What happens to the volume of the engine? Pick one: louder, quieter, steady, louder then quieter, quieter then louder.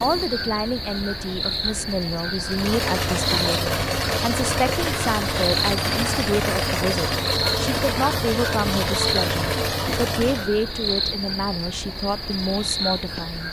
steady.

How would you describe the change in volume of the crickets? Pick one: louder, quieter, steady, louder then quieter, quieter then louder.
steady.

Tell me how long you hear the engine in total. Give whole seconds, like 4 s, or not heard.
8 s.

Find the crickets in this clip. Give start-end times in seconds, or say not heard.
0.0-13.4.